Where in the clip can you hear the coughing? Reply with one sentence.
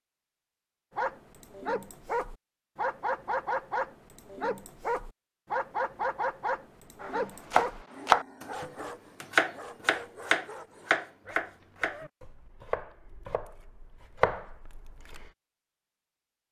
You can't hear the coughing here.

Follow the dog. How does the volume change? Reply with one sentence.
The volume of the dog goes down.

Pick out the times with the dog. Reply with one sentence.
The dog can be heard from 0.9 to 12.1 s.